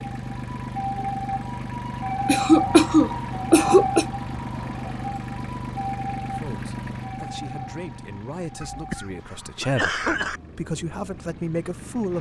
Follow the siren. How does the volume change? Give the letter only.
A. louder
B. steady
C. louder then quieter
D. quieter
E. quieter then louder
D.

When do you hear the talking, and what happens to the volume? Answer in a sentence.
You can hear the talking from 6.2 to 12.1 s, getting louder.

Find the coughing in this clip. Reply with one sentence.
The coughing can be heard from 2.2 to 4.0 s and from 8.6 to 10.4 s.